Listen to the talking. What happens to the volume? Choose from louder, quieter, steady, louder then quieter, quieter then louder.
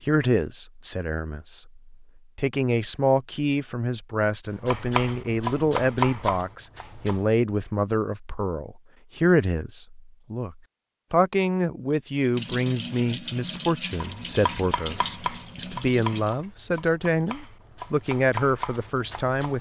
steady.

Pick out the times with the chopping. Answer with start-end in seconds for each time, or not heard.
4.5-7.2, 13.9-19.5.